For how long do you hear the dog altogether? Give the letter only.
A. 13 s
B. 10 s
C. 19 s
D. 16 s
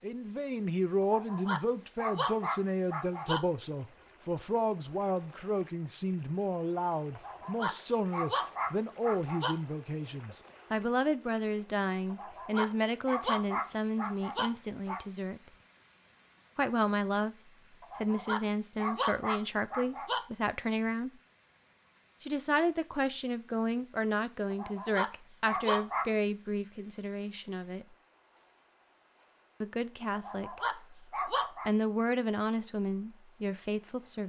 A.